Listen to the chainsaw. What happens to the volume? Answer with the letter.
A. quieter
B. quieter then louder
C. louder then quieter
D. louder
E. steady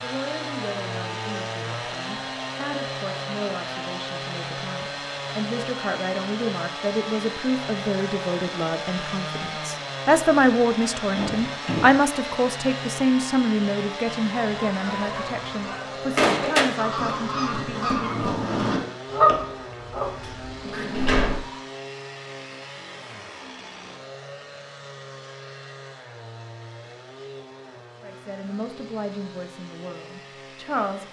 A.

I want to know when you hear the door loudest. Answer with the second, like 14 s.
21 s.